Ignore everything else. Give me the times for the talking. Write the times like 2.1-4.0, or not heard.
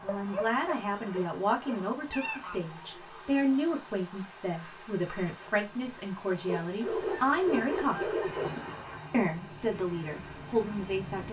0.0-8.2, 9.1-11.2.